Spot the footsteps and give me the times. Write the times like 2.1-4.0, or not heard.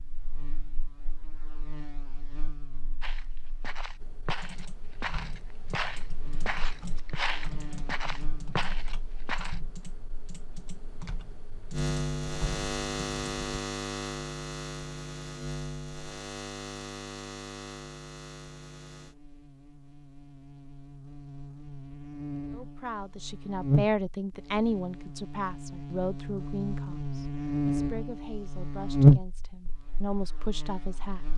3.0-9.6.